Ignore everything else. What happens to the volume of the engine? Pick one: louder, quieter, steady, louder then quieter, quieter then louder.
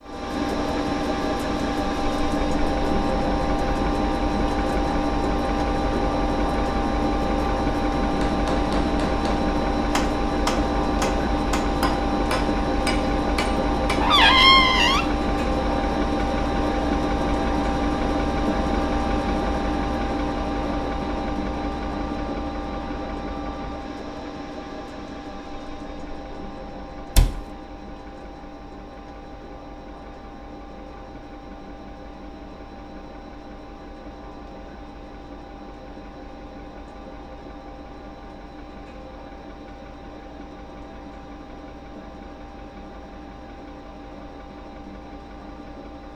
quieter.